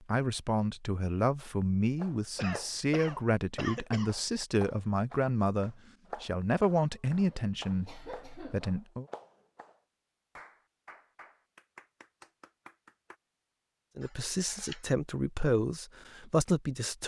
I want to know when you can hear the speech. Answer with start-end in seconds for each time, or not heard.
0.1-9.1, 13.9-17.0.